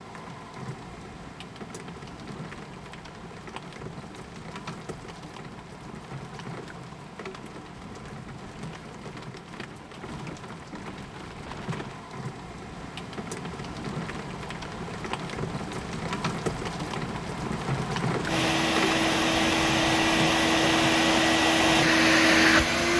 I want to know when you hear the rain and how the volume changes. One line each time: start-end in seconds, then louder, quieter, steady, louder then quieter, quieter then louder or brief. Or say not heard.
0.0-22.9 louder.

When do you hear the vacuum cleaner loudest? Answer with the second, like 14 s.
22 s.